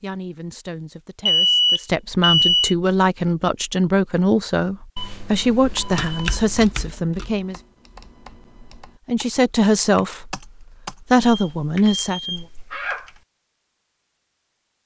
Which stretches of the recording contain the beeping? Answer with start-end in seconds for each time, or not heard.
1.2-2.8, 5.0-6.7, 11.2-13.1.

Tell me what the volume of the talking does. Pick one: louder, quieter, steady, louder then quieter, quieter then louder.
louder.